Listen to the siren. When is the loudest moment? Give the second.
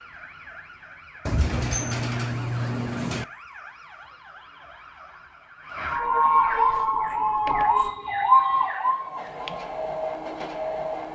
8 s.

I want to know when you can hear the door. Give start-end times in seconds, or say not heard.
1.2-3.2, 6.0-7.9.